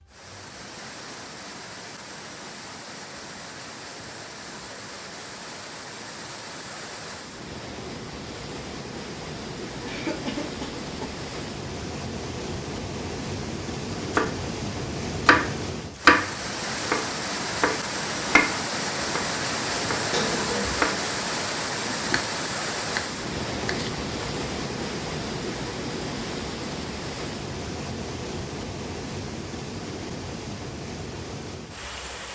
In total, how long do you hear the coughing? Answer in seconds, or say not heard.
2 s.